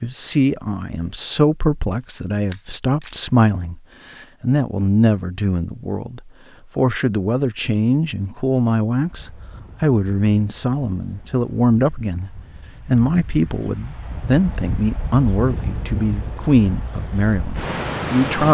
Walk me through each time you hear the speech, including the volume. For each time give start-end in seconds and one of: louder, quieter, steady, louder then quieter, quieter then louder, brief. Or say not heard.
0.0-18.4 steady.